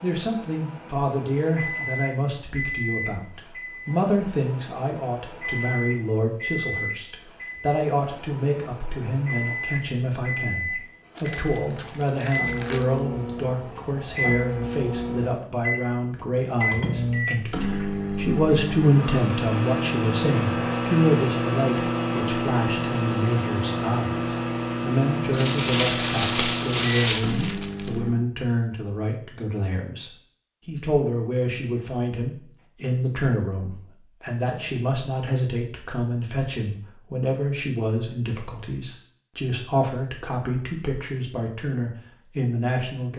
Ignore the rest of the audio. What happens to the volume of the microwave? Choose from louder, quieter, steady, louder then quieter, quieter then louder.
louder.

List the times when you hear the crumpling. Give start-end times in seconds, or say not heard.
11.2-13.0, 25.3-27.9.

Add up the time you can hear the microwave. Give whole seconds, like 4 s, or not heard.
28 s.